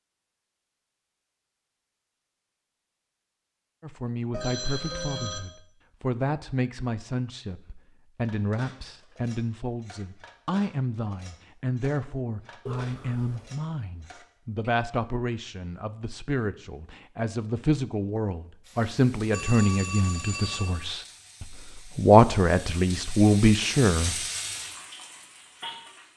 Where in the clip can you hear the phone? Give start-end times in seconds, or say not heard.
4.3-5.4, 12.7-13.5, 19.3-20.9.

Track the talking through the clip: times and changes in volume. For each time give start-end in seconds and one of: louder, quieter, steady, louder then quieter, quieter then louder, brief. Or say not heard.
3.8-24.1 louder.